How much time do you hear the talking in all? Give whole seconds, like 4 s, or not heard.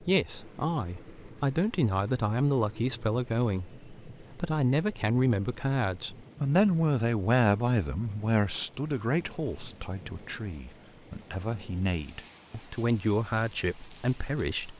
15 s.